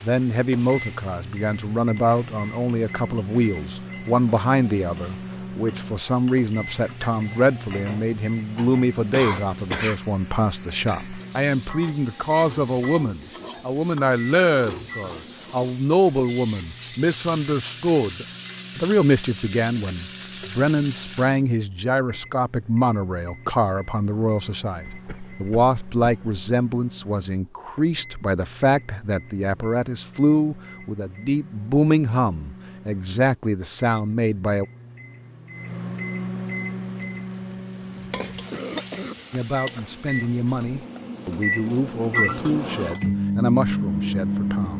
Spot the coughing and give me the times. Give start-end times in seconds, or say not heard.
9.1-10.0, 24.8-26.4, 38.3-39.1.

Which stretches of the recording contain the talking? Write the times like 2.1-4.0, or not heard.
0.0-34.6, 39.3-44.7.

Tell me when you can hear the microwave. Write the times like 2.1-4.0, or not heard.
0.0-44.7.